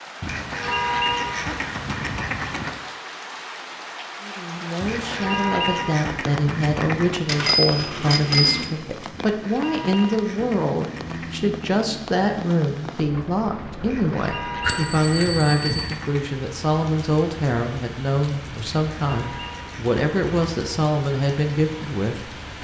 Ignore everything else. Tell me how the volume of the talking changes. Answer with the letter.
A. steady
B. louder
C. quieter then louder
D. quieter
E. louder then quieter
A.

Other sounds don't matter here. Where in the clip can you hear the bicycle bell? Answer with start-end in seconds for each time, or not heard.
7.2-8.7, 14.6-15.8.